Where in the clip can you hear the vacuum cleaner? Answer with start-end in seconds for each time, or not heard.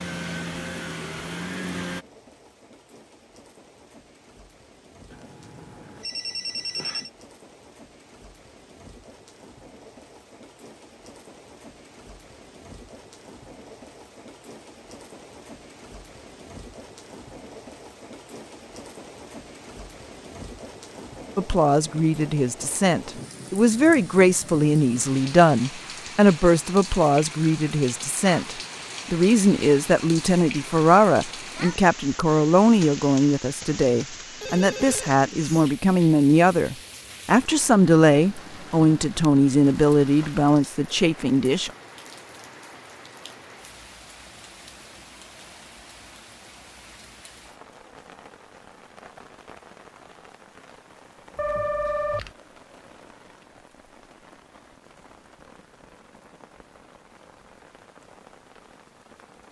0.0-2.0.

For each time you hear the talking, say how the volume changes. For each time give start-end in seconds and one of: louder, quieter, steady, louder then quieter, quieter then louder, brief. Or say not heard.
21.4-41.7 steady.